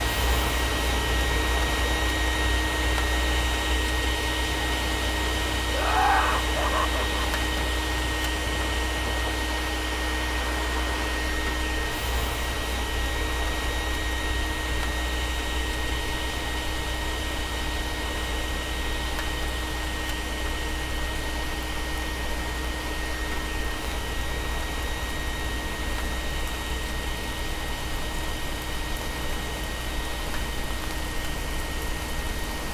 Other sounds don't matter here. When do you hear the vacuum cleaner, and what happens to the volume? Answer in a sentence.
The vacuum cleaner can be heard from 0.0 to 32.6 s, getting quieter.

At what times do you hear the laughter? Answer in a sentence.
You can hear the laughter from 5.7 to 7.2 s.